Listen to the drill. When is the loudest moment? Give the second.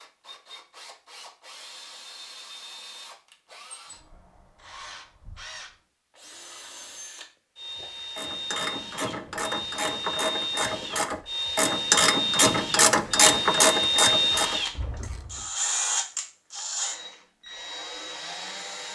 14 s.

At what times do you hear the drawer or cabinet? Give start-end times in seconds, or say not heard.
not heard.